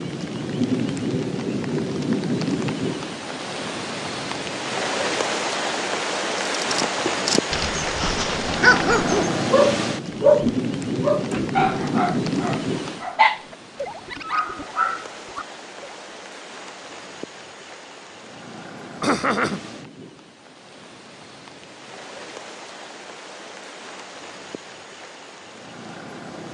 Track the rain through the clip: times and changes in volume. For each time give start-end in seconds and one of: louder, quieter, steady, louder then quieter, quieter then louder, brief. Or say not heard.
0.0-26.4 quieter.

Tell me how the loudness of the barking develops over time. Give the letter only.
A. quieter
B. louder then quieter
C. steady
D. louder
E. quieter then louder
B.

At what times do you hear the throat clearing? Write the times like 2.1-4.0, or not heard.
19.0-19.6.